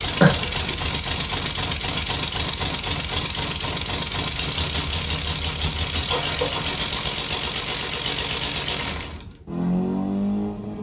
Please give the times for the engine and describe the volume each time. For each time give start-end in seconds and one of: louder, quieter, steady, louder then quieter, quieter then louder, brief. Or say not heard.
0.0-10.7 steady.